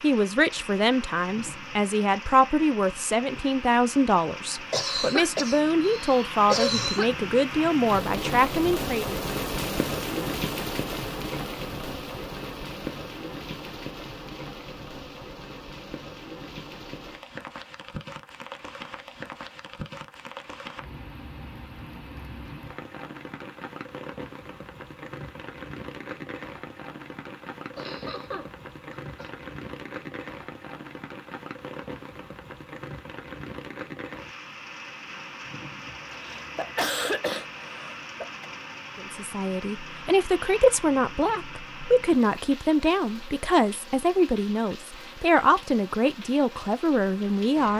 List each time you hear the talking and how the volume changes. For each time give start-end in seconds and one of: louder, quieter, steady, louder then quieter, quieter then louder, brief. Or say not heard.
0.0-9.2 steady
39.0-47.7 steady.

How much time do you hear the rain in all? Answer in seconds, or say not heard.
48 s.